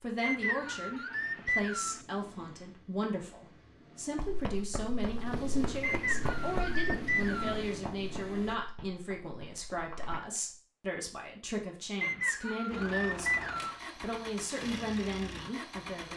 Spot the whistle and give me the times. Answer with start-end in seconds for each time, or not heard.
0.2-2.0, 5.8-7.7, 12.0-13.8.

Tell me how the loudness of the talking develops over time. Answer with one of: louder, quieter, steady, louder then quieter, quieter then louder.
steady.